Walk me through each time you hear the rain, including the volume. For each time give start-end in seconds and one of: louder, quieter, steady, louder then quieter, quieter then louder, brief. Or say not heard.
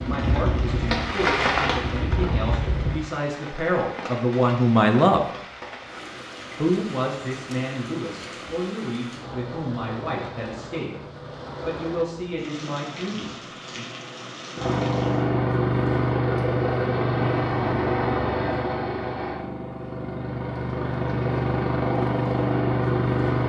0.0-15.3 quieter.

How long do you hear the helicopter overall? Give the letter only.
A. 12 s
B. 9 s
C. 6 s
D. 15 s
A.